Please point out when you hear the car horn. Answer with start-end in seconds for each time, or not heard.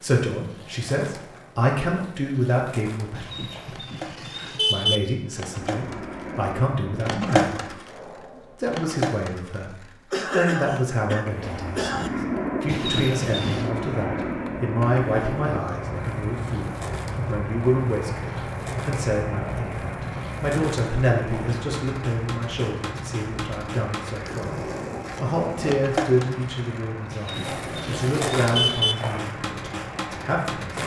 3.1-5.0, 12.7-13.7, 27.1-28.9.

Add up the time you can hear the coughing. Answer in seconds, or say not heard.
2 s.